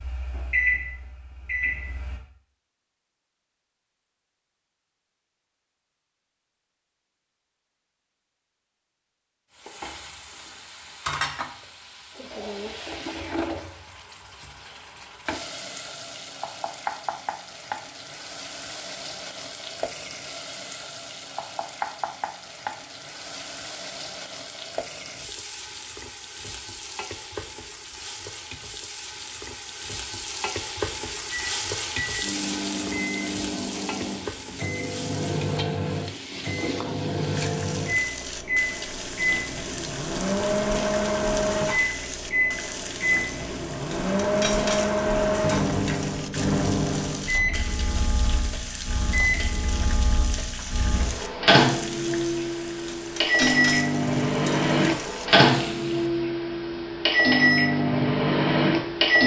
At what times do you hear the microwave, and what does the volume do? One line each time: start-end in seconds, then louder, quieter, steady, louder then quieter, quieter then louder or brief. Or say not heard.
0.0-2.2 brief
31.3-59.2 louder.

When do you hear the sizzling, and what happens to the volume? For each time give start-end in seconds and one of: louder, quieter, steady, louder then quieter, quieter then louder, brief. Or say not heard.
9.6-56.1 steady.